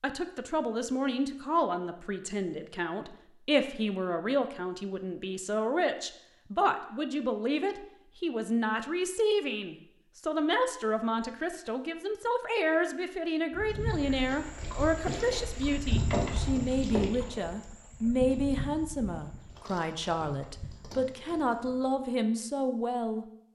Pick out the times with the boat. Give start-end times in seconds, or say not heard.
13.6-22.1.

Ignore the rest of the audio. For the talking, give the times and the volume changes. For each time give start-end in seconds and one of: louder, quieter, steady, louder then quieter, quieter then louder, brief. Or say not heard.
0.0-23.2 steady.